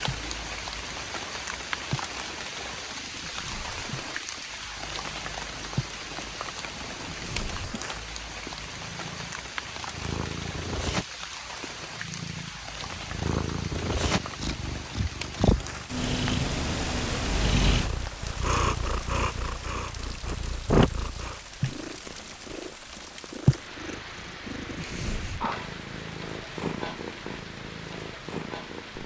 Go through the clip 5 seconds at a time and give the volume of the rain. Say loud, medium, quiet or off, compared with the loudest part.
loud, loud, loud, medium, medium, medium.